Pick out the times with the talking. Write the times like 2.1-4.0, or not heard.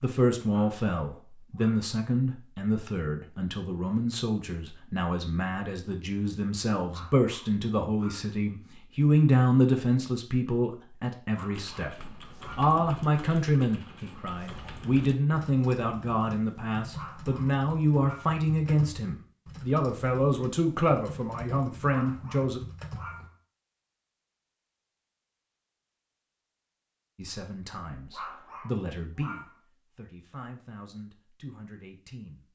0.0-22.6, 27.1-32.5.